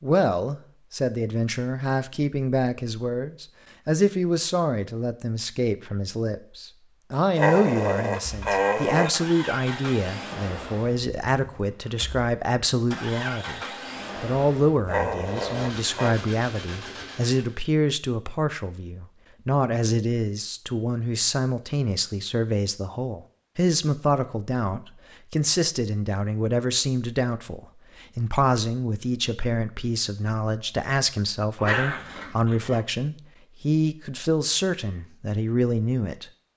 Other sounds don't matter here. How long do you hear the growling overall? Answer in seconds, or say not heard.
4 s.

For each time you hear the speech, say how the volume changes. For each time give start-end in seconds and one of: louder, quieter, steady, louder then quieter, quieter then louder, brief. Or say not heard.
0.0-13.6 steady
14.2-36.2 steady.